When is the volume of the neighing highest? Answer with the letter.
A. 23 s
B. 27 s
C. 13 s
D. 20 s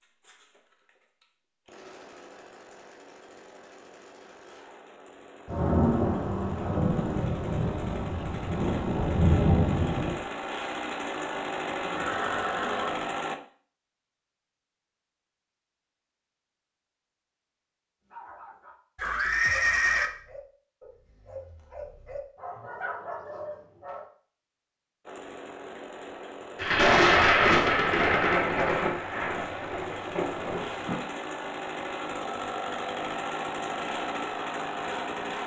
D.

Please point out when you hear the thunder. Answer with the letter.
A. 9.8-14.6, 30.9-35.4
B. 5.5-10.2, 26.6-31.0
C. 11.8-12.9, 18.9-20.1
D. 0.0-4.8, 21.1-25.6
B.